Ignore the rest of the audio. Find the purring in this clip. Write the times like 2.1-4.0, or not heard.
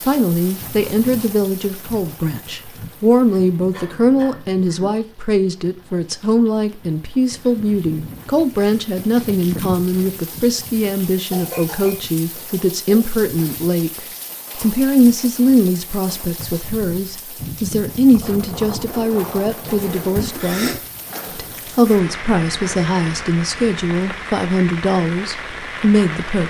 not heard.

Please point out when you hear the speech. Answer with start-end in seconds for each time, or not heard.
0.1-20.8, 21.4-26.4.